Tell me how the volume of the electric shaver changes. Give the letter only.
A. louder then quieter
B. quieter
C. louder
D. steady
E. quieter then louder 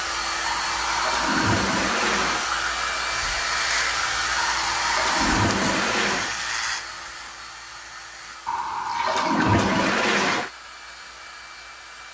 B.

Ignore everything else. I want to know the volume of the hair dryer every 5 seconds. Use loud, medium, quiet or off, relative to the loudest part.
loud, medium, quiet.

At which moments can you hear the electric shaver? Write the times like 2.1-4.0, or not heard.
3.1-8.3.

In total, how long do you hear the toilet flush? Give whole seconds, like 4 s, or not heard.
6 s.